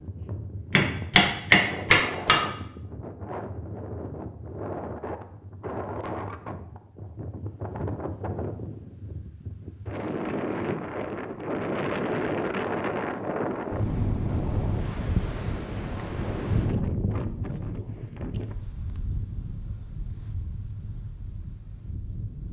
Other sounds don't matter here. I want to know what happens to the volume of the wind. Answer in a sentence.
The volume of the wind goes up, then down.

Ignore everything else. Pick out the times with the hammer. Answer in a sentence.
You can hear the hammer from 0.7 to 2.5 s.